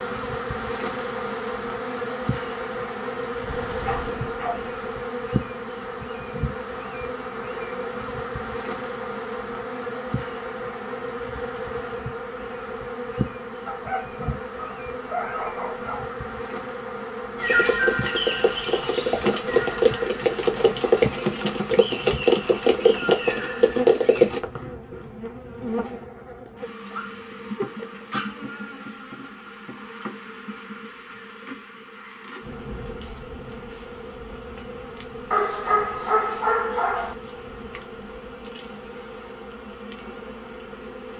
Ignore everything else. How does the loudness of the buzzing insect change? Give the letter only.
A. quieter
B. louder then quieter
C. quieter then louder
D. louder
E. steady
A.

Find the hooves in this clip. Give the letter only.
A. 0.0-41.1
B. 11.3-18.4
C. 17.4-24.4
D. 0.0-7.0
C.